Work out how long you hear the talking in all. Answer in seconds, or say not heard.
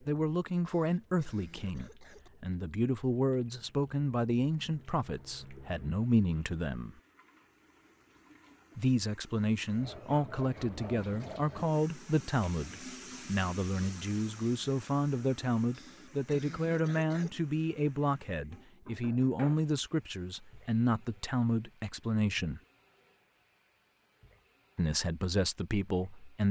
22 s.